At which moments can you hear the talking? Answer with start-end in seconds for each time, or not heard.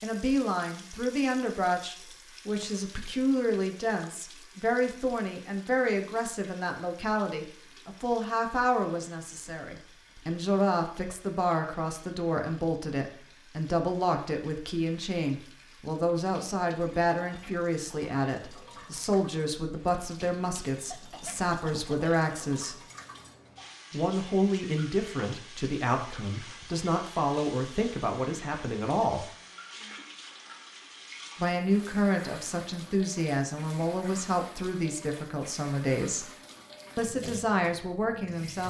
0.0-22.8, 23.9-29.3, 31.4-36.3, 37.0-38.6.